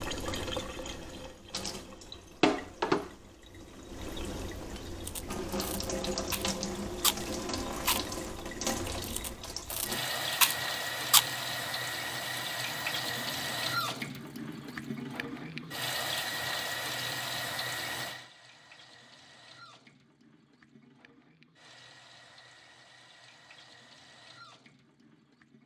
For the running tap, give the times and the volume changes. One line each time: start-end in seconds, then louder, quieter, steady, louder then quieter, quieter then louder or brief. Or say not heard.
0.0-25.6 quieter.